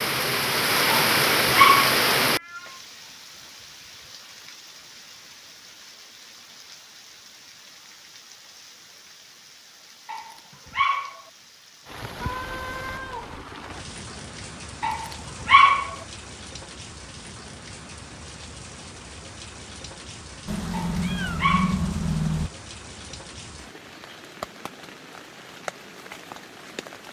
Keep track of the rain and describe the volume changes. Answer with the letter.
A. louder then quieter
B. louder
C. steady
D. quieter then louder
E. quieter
D.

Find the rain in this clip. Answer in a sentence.
The rain can be heard from 0.0 to 27.0 s.